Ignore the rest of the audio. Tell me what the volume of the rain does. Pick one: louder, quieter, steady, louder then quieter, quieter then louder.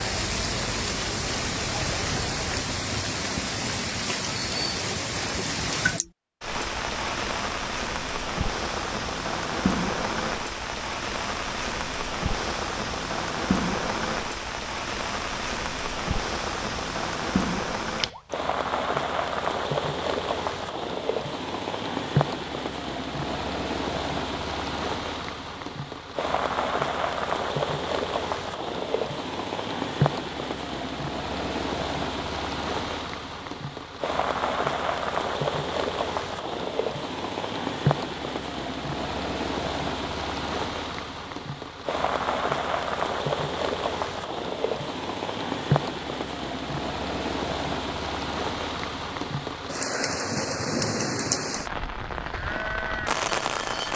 steady.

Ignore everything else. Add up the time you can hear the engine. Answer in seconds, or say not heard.
3 s.